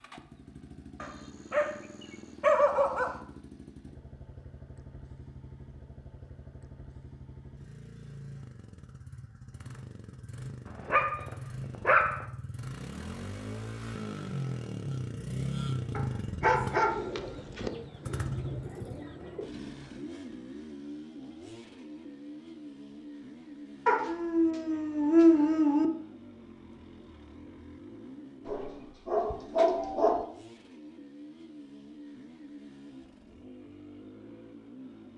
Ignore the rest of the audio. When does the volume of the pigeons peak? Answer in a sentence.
The volume of the pigeons peaks at 17 seconds.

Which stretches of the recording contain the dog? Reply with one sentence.
You can hear the dog from 1.0 to 1.7 s, from 2.4 to 3.1 s, from 10.8 to 12.2 s, from 15.9 to 17.7 s, from 23.9 to 25.9 s and from 28.4 to 30.2 s.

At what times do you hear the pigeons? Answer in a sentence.
The pigeons can be heard from 16.6 to 19.5 s.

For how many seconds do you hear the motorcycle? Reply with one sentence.
You can hear the motorcycle for 35 seconds altogether.